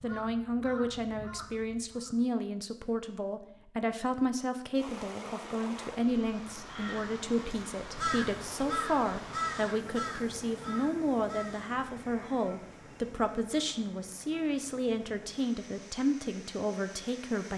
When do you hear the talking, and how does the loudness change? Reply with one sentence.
The talking can be heard from 0.0 to 17.5 s, at a steady volume.